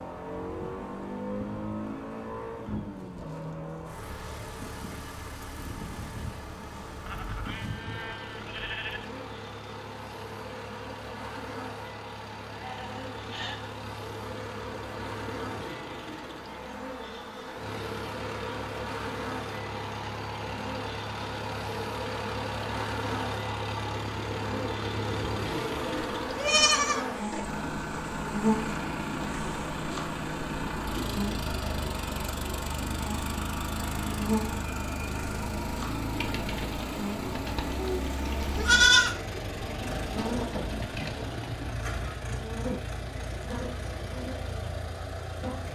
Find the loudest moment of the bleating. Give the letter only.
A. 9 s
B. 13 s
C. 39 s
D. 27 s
C.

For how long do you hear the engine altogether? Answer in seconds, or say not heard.
46 s.